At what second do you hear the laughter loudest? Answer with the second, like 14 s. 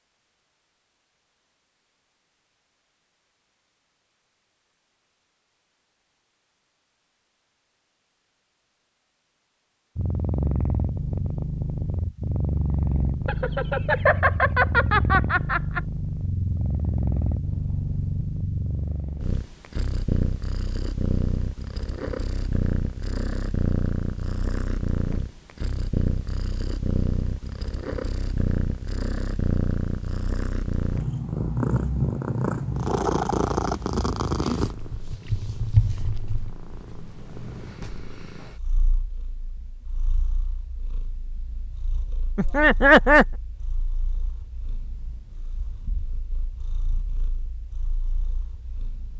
43 s.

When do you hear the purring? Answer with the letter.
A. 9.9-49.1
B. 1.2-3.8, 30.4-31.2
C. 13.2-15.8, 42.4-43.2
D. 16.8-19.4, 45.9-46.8
A.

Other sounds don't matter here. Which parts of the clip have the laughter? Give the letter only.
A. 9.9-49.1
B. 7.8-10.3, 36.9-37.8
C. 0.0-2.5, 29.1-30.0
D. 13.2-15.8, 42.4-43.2
D.